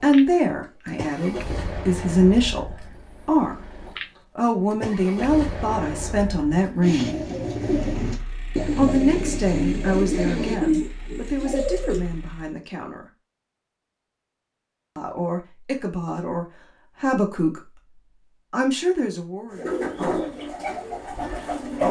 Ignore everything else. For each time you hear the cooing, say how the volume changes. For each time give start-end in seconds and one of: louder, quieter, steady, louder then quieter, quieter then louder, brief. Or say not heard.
6.8-12.0 steady
19.5-21.8 brief.